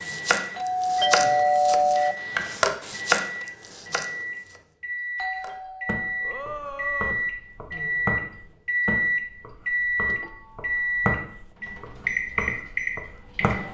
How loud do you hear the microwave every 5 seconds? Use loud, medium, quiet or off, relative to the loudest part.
medium, loud, loud.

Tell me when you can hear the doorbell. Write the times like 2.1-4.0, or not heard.
0.6-2.1, 5.2-7.2, 10.1-11.0.